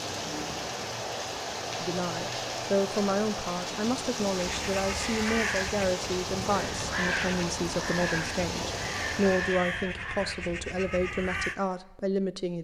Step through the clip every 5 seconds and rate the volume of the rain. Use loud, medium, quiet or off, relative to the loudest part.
loud, loud, off.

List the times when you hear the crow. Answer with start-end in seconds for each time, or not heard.
4.3-11.6.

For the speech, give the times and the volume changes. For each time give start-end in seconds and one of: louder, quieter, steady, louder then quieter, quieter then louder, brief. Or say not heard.
1.8-12.5 steady.